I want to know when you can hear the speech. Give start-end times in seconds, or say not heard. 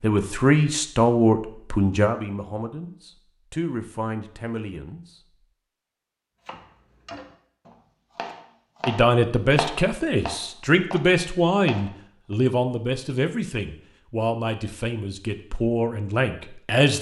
0.0-5.0, 8.8-16.9.